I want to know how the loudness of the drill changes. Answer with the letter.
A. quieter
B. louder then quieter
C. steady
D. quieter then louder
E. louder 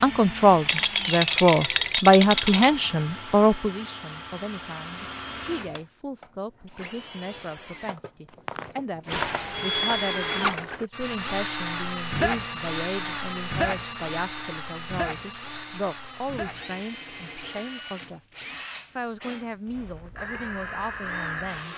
B.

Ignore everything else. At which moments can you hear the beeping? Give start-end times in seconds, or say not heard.
not heard.